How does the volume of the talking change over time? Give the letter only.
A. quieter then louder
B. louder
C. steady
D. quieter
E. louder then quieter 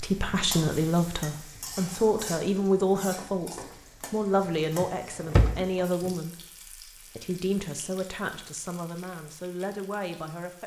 D.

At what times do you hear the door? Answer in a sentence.
The door can be heard from 4.8 to 6.1 s.